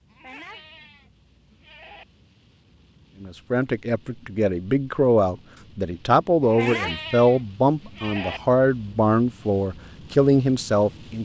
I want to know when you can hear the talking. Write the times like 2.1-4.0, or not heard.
3.2-11.2.